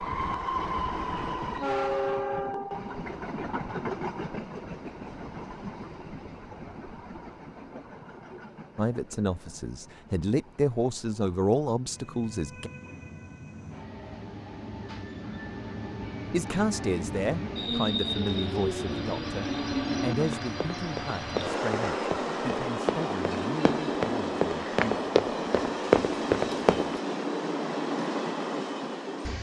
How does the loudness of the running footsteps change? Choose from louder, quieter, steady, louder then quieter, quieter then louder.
louder.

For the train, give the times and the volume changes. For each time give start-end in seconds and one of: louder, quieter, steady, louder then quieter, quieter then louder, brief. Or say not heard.
0.0-29.3 quieter then louder.